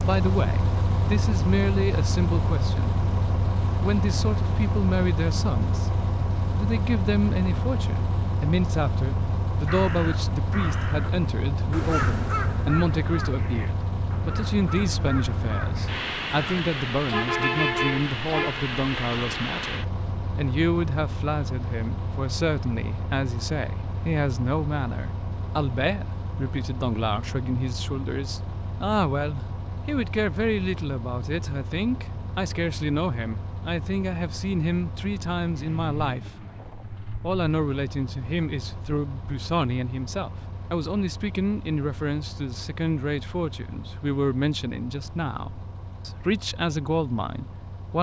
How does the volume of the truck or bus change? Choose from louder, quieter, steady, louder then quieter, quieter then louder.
quieter.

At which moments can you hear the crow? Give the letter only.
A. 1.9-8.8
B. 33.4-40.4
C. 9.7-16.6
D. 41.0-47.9
C.